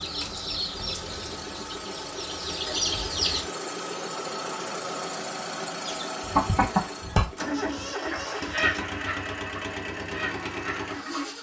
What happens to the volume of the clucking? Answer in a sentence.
The volume of the clucking goes up, then down.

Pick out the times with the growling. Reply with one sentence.
You can't hear the growling here.